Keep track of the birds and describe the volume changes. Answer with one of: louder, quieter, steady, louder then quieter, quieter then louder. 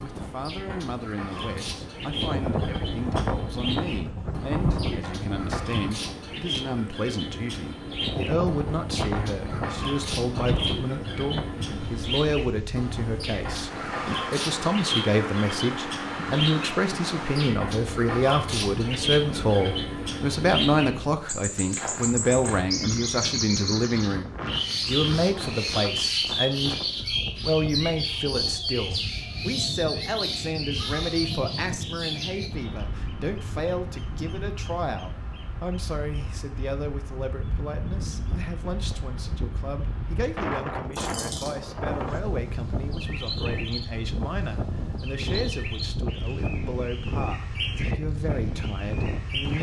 louder then quieter.